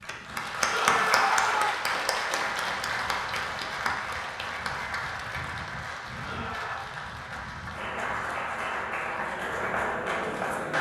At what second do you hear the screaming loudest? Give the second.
1 s.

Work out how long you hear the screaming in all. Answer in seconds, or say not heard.
2 s.